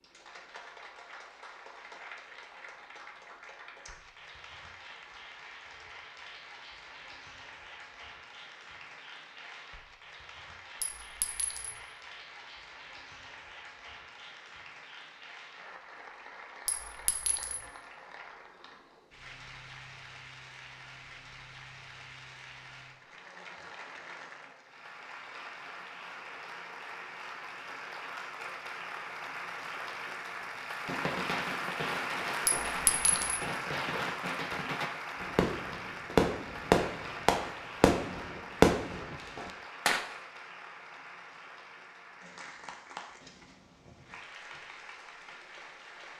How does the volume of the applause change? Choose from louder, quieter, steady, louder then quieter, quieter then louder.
louder then quieter.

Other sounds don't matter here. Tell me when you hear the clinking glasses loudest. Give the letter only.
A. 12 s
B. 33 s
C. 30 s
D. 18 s
B.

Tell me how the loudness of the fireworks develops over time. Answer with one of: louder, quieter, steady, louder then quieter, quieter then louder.
louder.